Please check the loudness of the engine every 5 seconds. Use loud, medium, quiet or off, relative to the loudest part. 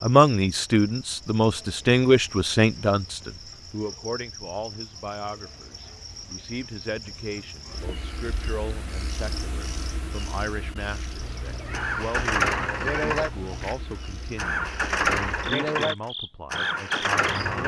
off, off, loud, loud.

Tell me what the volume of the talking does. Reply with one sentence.
The loudness of the talking goes down.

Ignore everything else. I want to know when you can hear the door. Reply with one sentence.
The door can't be heard in this clip.